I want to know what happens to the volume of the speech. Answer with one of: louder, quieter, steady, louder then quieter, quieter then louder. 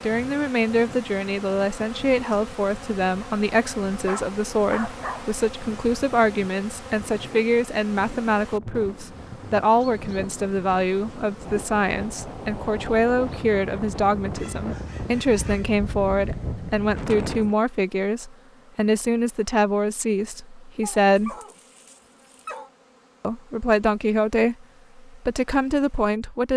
steady.